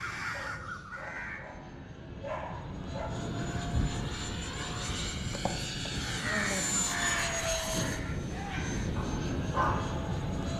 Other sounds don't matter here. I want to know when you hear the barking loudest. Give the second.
10 s.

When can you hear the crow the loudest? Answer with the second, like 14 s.
6 s.